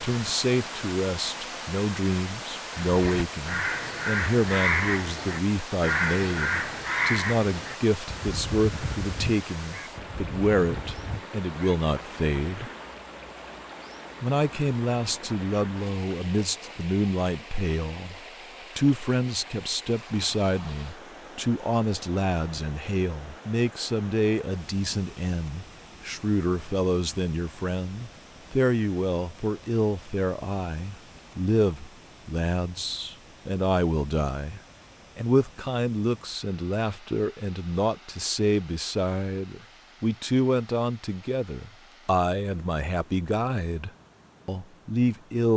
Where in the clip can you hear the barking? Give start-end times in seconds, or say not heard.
not heard.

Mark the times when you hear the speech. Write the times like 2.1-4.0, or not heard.
0.0-12.7, 14.2-18.1, 18.8-45.5.